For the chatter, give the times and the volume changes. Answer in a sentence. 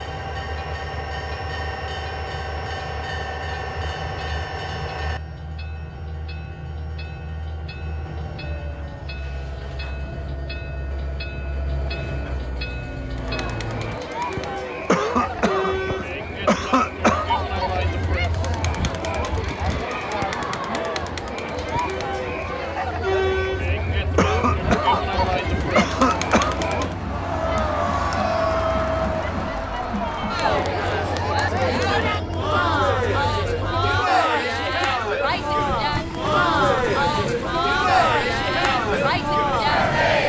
The chatter can be heard from 13.2 to 40.2 s, getting louder.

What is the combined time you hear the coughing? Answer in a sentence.
The coughing can be heard for 5 seconds in total.